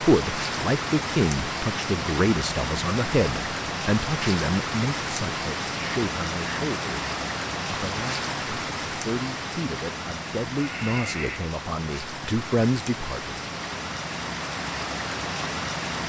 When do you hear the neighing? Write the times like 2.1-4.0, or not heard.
10.6-11.4.